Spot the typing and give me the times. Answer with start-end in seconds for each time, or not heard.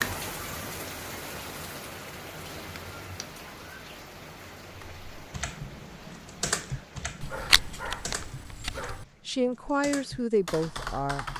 4.8-11.3.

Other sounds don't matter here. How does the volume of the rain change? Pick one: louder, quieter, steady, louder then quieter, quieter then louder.
quieter.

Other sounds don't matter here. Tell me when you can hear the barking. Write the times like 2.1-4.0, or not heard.
7.2-9.1.